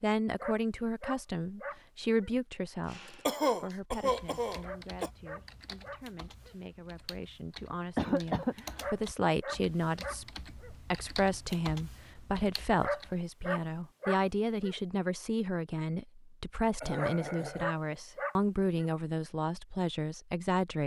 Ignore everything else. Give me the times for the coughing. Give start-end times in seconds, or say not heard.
3.2-5.1, 8.0-8.8, 16.8-17.8.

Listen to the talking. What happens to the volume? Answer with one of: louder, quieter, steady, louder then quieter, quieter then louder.
quieter then louder.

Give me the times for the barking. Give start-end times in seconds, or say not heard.
0.4-2.3, 4.6-6.5, 8.8-10.7, 12.8-14.8, 16.9-18.9.